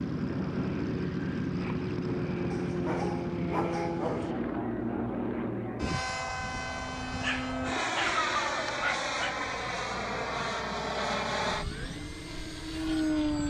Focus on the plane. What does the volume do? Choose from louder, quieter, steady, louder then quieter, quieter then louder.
steady.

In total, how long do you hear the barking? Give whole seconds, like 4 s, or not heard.
4 s.